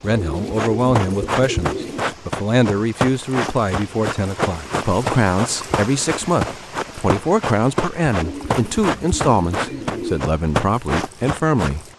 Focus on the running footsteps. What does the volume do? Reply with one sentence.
The loudness of the running footsteps stays about the same.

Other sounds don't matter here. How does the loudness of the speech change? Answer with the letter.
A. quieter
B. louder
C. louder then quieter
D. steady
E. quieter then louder
D.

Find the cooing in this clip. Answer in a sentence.
The cooing can be heard from 0.0 to 2.0 s and from 8.2 to 10.2 s.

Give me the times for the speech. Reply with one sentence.
You can hear the speech from 0.0 to 11.8 s.